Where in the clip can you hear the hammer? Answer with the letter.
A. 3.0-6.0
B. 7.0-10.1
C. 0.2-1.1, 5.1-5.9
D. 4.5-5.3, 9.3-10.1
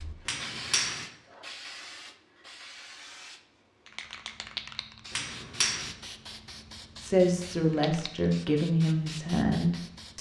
C.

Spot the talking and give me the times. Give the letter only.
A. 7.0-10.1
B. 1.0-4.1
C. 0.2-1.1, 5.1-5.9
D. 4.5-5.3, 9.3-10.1
A.